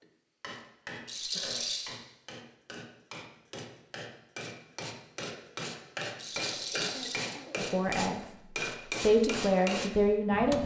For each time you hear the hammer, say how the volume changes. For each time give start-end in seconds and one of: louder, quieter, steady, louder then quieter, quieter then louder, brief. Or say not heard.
0.0-10.6 louder.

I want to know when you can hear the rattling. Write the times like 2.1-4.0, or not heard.
1.1-2.0, 6.2-7.3.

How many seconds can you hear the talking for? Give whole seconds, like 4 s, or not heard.
3 s.